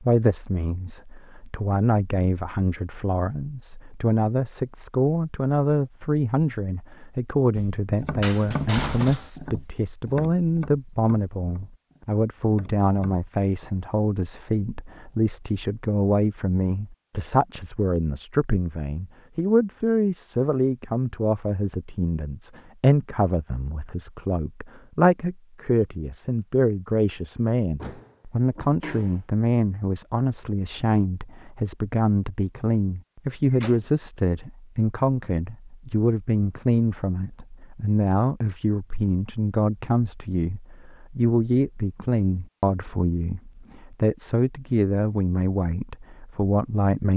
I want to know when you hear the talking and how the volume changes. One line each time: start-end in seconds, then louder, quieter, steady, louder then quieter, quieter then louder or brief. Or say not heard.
0.0-47.1 steady.